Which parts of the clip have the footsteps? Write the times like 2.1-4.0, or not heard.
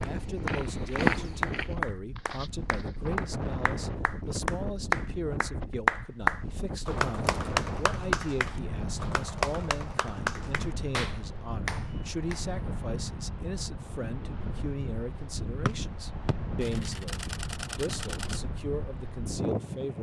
0.0-3.3.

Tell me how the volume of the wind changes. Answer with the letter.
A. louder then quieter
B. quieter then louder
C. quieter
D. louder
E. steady
E.